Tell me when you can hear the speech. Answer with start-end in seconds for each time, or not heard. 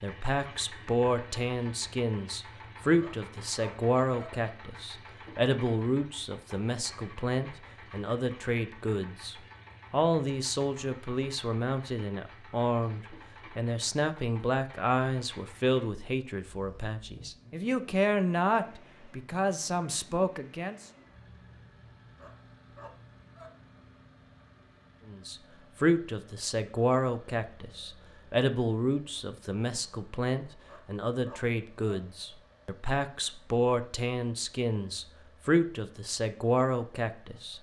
0.0-20.9, 25.1-37.5.